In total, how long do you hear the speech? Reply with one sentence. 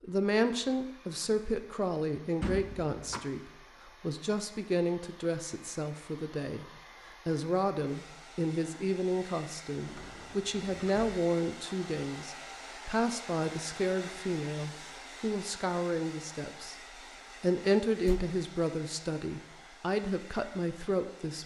The speech can be heard for 21 seconds in total.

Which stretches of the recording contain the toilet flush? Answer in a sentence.
The toilet flush can't be heard in this clip.